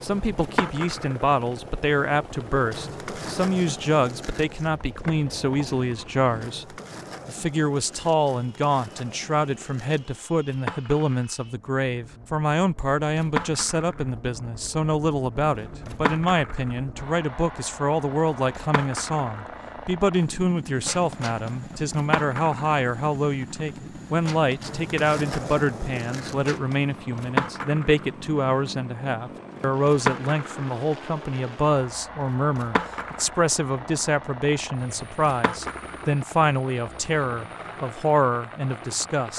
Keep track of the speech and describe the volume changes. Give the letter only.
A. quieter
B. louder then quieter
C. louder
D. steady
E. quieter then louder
D.